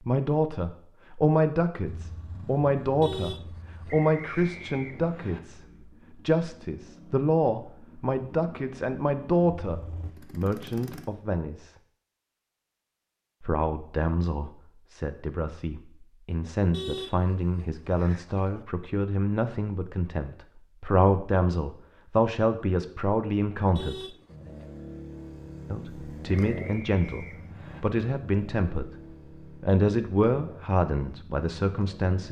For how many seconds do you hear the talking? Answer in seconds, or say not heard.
28 s.